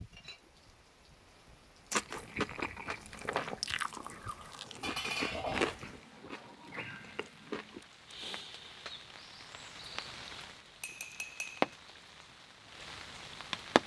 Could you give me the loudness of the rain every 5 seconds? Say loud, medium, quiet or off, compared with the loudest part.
quiet, medium, loud.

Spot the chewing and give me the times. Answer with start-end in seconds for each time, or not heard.
1.9-7.8.